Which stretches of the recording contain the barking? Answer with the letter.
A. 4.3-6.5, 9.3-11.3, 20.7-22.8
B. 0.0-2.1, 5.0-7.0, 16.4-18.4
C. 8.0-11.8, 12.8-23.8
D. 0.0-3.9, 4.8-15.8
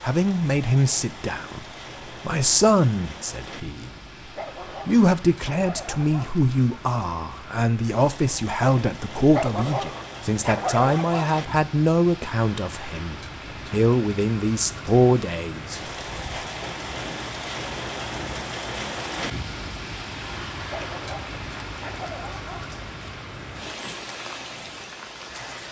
A.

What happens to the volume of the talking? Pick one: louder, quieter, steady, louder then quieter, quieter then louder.
steady.